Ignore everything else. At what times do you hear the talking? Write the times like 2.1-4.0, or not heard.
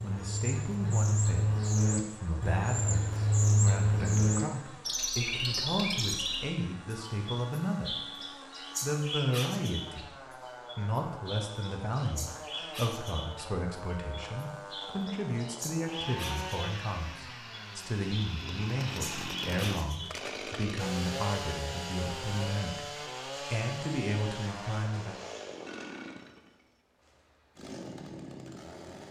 0.0-8.0, 8.8-10.1, 10.8-25.2.